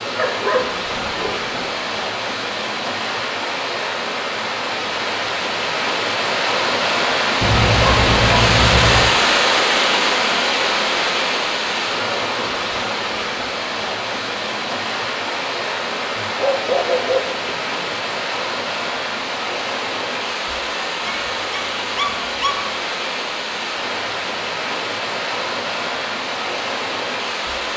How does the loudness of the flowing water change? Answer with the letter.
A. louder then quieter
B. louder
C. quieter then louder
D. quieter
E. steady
A.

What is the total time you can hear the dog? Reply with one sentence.
You can hear the dog for 7 seconds altogether.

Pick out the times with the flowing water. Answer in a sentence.
The flowing water can be heard from 0.0 to 27.7 s.